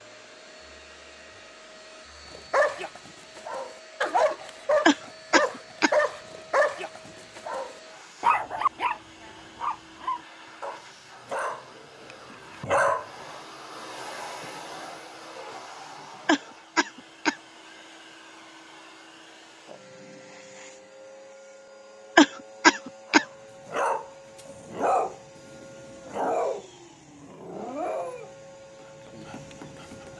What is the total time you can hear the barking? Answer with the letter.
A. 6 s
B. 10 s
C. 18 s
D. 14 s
C.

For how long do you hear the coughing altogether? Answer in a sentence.
The coughing can be heard for 3 seconds in total.